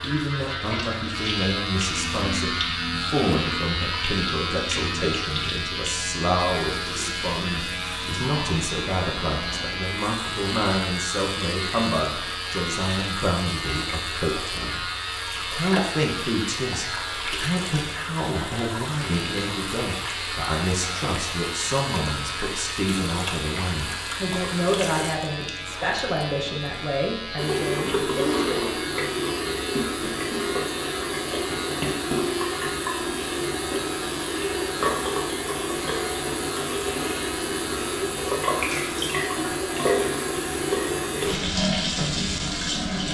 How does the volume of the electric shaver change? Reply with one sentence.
The loudness of the electric shaver goes down.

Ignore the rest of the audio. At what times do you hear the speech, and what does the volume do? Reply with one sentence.
You can hear the speech from 0.0 to 28.8 s, at a steady volume.